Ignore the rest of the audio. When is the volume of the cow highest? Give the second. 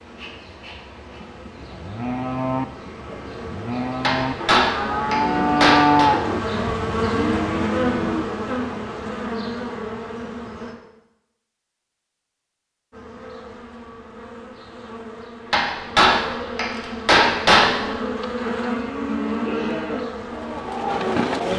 6 s.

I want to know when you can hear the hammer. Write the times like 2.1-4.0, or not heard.
4.0-6.1, 15.5-17.9.